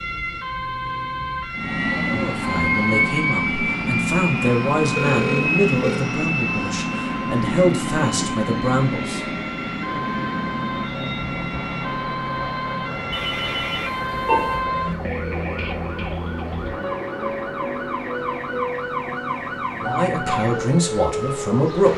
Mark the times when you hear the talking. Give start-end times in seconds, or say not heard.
2.1-9.2, 19.8-21.9.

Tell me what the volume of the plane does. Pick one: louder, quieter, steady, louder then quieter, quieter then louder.
quieter.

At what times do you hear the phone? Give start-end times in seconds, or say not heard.
5.0-6.1, 13.1-14.6.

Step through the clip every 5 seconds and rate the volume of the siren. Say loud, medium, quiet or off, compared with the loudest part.
loud, medium, loud, loud, loud.